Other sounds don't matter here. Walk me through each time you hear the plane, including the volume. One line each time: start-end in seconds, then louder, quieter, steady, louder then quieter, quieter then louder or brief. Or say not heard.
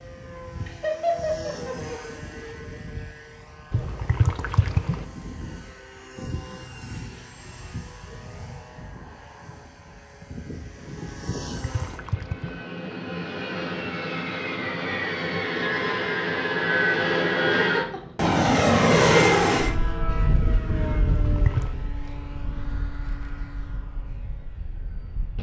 0.0-25.3 louder then quieter.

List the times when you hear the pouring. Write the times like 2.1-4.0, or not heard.
3.7-5.0, 11.5-12.6, 21.1-21.7.